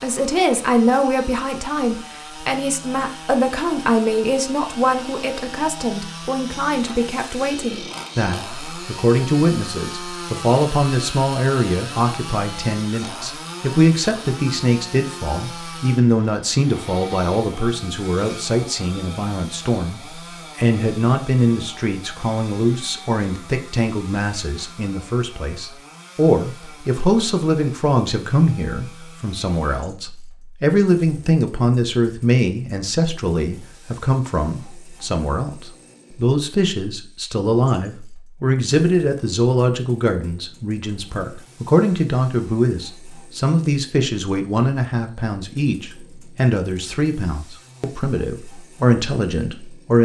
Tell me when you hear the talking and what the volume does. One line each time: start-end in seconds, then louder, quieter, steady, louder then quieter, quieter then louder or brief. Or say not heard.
0.0-50.0 steady.